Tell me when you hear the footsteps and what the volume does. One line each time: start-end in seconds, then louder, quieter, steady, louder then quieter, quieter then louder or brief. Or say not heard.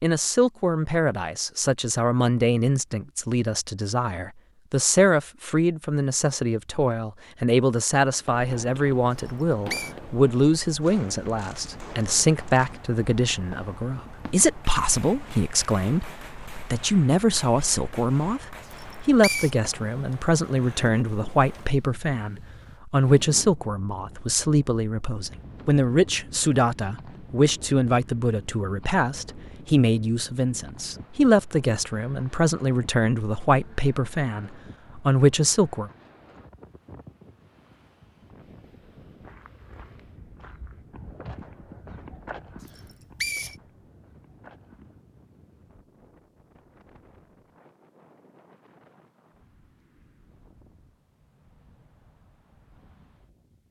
39.2-45.0 louder then quieter.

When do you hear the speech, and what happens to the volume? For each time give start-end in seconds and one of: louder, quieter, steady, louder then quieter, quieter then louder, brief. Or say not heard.
0.0-35.9 steady.